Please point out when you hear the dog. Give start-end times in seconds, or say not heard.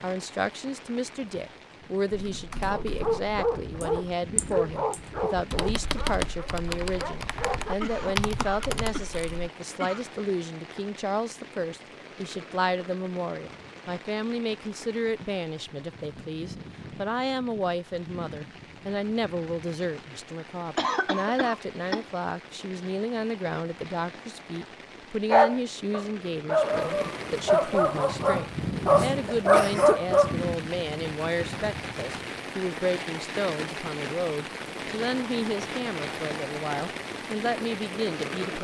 2.6-8.2, 25.3-30.4.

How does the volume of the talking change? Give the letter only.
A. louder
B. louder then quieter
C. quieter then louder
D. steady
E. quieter
D.